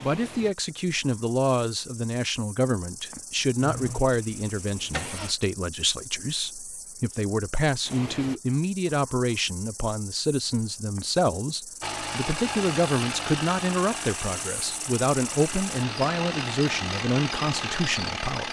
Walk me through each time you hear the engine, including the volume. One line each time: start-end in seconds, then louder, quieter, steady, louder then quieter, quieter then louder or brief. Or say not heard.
3.6-5.3 brief
11.8-18.4 quieter then louder.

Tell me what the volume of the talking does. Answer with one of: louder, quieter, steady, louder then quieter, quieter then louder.
steady.